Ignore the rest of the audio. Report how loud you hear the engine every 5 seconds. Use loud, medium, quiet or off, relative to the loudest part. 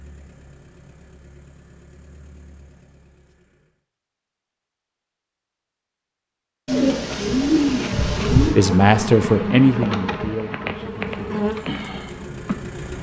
quiet, off, loud.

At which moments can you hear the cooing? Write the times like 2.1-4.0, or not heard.
6.7-8.6.